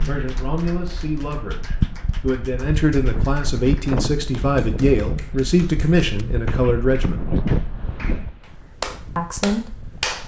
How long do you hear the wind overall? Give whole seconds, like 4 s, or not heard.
10 s.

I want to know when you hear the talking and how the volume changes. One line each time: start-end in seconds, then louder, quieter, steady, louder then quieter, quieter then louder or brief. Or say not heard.
0.0-7.2 louder
9.2-10.2 brief.